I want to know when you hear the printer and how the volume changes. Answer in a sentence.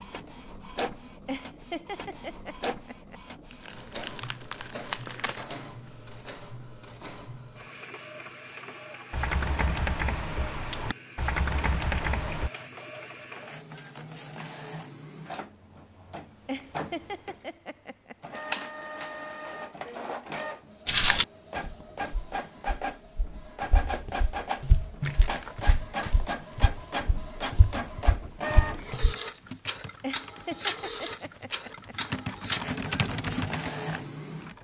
You can hear the printer from 0.0 to 34.5 s, getting louder.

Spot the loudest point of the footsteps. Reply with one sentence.
The loudest moment of the footsteps is at 21 seconds.